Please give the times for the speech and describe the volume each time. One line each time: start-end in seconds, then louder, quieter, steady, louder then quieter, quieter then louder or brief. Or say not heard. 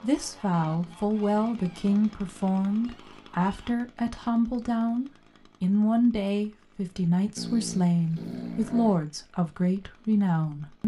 0.0-10.8 steady.